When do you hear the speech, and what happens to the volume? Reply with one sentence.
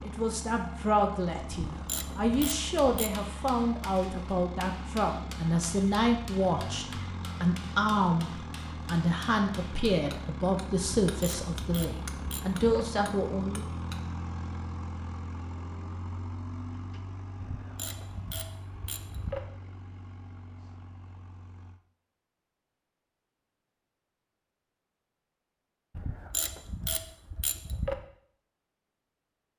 You can hear the speech from 0.0 to 13.7 s, at a steady volume.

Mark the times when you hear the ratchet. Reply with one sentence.
The ratchet can be heard from 1.6 to 3.1 s, from 11.1 to 12.8 s, from 17.4 to 19.4 s and from 25.9 to 27.9 s.